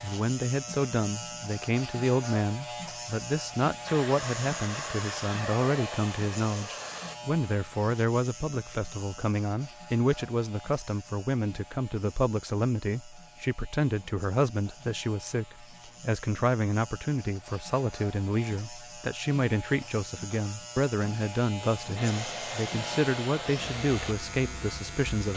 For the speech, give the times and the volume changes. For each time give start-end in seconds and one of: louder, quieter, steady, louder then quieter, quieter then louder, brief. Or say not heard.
0.0-25.3 steady.